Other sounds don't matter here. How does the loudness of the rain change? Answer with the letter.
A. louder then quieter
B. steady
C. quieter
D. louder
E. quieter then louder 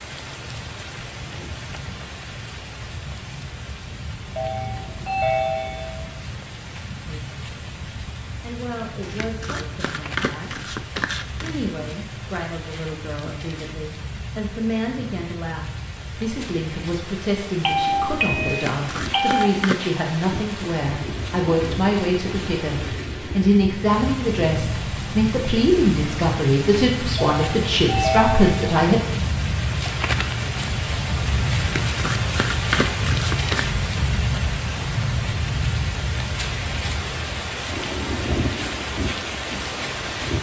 D.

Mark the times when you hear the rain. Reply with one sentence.
The rain can be heard from 0.0 to 40.3 s.